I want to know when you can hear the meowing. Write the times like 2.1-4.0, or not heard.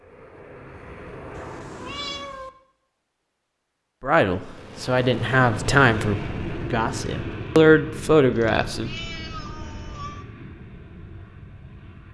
1.4-2.5, 8.3-10.2.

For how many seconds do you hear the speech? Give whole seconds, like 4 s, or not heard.
5 s.